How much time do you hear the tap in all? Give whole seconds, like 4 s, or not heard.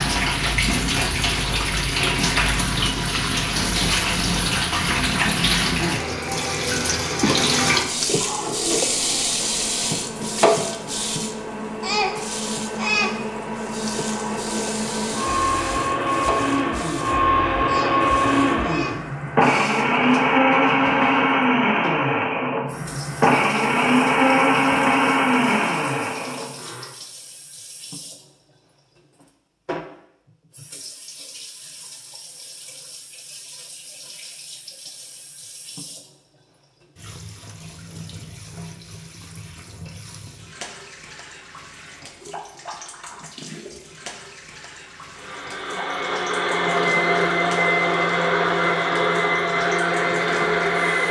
51 s.